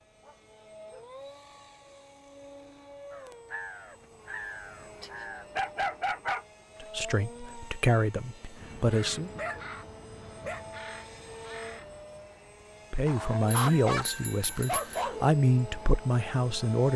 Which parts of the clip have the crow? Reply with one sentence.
You can hear the crow from 3.1 to 5.5 s and from 8.6 to 12.1 s.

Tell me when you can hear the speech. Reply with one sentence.
You can hear the speech from 6.8 to 9.3 s and from 12.9 to 16.9 s.